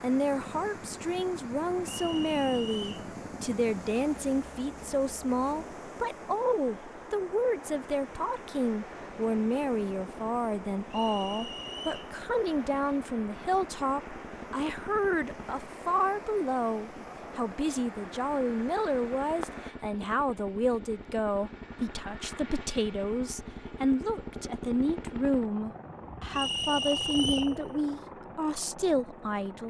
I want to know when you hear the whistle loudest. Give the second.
27 s.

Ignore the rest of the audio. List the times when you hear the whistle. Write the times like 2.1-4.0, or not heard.
1.9-3.0, 10.9-12.2, 26.3-27.6.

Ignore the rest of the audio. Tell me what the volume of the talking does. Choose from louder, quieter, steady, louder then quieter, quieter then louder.
steady.